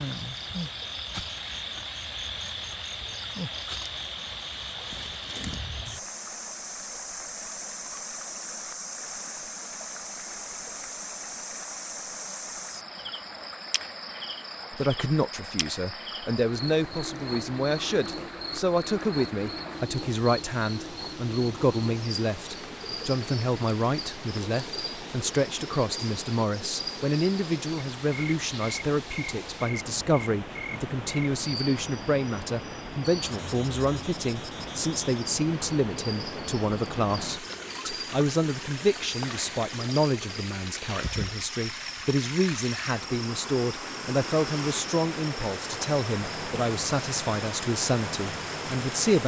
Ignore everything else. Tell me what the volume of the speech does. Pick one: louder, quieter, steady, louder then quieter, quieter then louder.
steady.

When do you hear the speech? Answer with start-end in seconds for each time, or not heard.
14.7-49.2.